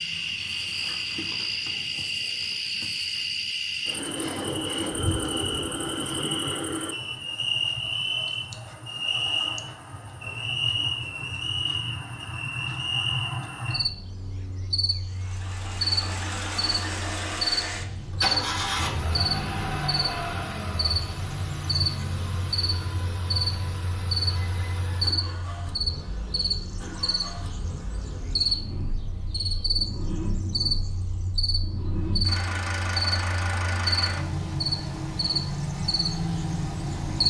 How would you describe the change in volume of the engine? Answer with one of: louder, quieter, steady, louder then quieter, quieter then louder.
quieter then louder.